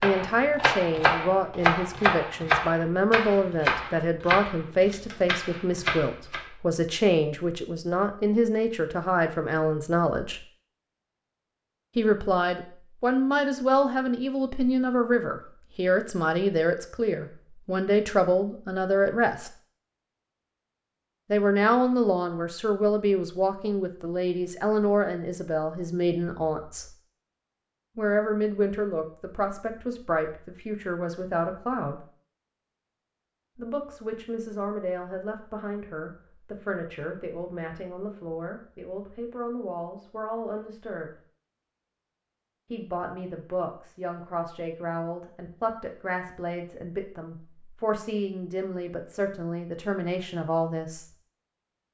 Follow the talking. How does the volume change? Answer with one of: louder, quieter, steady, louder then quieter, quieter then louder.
quieter.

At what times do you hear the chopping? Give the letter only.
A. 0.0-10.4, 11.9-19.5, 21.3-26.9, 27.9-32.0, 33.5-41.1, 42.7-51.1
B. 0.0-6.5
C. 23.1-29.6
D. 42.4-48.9
B.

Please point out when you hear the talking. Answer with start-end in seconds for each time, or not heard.
0.0-10.4, 11.9-19.5, 21.3-26.9, 27.9-32.0, 33.5-41.1, 42.7-51.1.